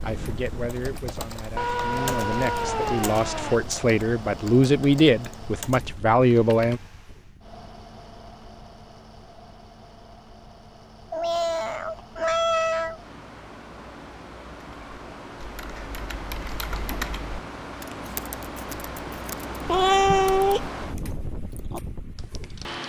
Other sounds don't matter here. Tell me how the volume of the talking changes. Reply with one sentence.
The volume of the talking goes up.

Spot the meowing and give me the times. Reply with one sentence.
You can hear the meowing from 1.6 to 3.6 s, from 11.1 to 13.0 s and from 19.6 to 20.7 s.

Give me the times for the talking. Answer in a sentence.
You can hear the talking from 0.0 to 6.8 s.